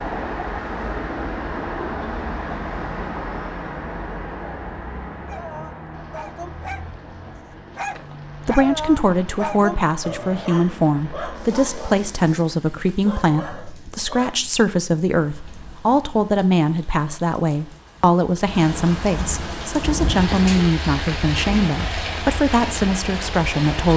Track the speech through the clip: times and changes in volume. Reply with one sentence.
You can hear the speech from 8.4 to 23.9 s, at a steady volume.